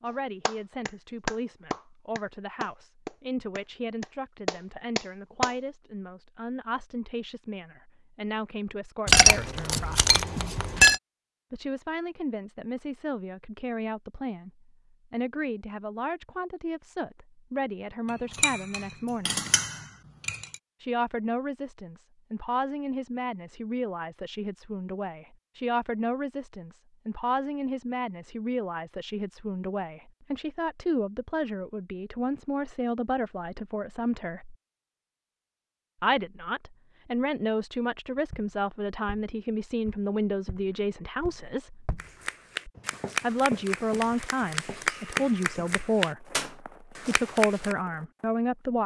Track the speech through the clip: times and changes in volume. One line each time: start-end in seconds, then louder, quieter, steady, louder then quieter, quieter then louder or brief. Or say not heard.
0.0-10.1 steady
11.5-19.4 steady
20.8-34.5 steady
36.0-41.9 steady
43.2-48.8 steady.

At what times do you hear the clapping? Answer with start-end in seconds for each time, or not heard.
0.5-5.5, 42.0-47.8.